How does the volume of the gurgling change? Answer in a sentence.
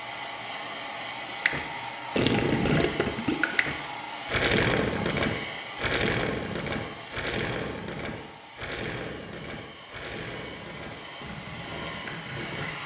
The volume of the gurgling goes down.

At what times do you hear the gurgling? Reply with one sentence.
The gurgling can be heard from 1.4 to 12.7 s.